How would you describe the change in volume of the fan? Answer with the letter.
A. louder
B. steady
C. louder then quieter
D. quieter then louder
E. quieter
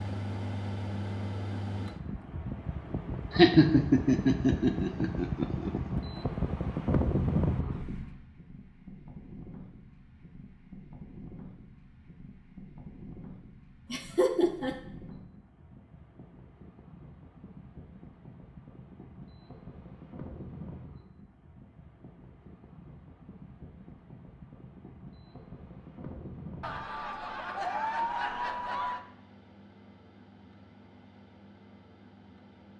E.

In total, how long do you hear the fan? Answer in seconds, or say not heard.
33 s.